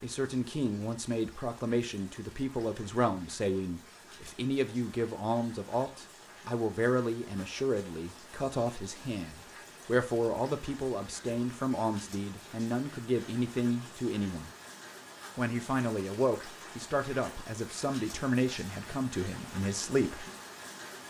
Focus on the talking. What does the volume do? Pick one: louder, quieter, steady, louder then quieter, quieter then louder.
steady.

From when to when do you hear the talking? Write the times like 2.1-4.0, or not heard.
0.0-14.5, 15.3-20.2.